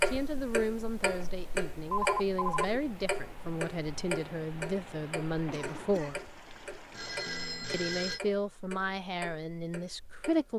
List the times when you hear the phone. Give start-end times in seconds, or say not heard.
1.9-2.6, 6.9-8.2.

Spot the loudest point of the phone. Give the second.
2 s.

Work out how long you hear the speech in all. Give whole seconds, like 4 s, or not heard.
9 s.